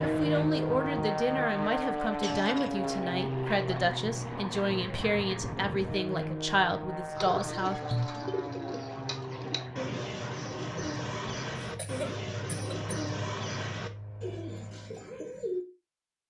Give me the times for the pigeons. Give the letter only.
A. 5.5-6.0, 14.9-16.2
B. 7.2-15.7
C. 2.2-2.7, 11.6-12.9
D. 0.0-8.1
B.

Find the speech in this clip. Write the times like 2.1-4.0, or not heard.
0.0-8.1.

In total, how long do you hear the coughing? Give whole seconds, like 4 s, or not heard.
2 s.